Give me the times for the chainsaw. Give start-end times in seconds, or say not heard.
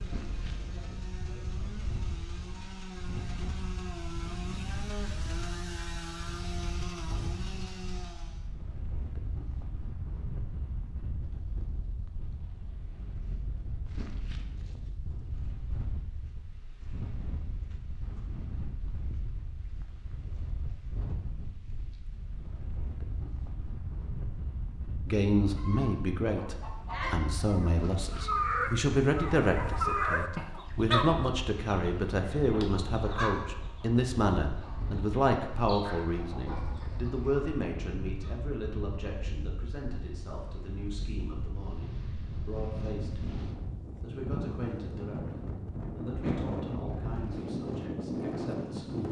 0.0-8.5.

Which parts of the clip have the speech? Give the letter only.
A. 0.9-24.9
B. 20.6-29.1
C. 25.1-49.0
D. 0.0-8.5
C.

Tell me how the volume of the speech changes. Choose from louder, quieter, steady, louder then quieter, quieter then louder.
quieter.